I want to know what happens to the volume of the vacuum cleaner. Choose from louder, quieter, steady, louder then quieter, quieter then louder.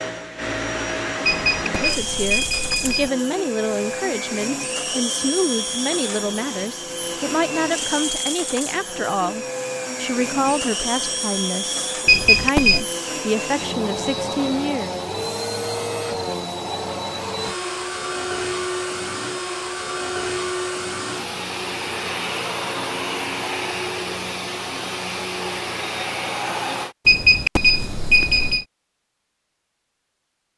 steady.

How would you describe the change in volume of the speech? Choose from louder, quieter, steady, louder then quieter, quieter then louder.
steady.